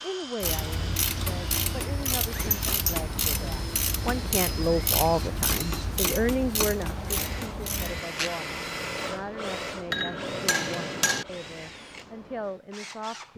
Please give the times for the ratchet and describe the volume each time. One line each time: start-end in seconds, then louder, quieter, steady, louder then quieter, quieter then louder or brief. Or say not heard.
0.4-8.4 steady.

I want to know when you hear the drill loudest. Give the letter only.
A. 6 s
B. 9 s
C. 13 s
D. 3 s
B.